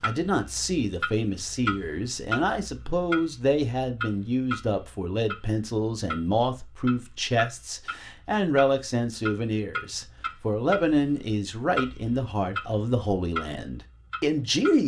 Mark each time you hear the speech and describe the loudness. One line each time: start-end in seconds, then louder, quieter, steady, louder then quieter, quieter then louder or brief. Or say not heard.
0.0-14.8 steady.